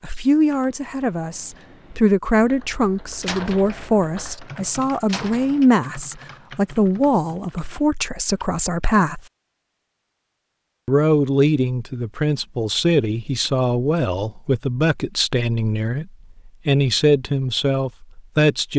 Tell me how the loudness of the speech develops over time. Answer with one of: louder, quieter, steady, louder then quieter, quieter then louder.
steady.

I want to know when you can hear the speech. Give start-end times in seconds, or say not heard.
0.0-9.2, 10.8-18.7.